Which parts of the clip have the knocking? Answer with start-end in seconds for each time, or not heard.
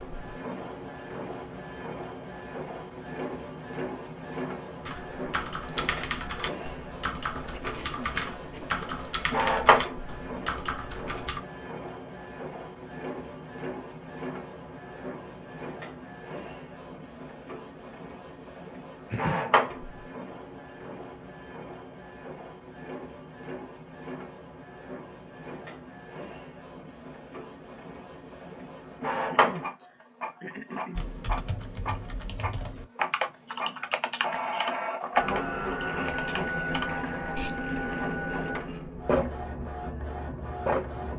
not heard.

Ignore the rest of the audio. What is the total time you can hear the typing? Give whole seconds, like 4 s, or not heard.
13 s.